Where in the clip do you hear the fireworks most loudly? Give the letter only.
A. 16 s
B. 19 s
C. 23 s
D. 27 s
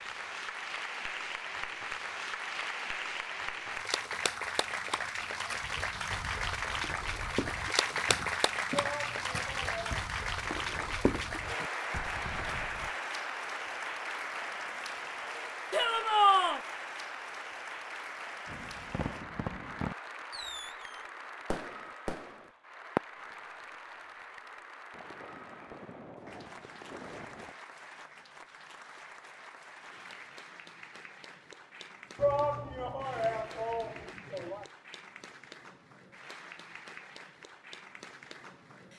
C.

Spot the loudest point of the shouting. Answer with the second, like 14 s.
16 s.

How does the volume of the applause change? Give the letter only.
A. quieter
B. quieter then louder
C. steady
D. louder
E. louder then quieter
A.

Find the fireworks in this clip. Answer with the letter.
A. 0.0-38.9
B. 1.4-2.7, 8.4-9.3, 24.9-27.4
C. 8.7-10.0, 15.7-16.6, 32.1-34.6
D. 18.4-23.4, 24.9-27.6
D.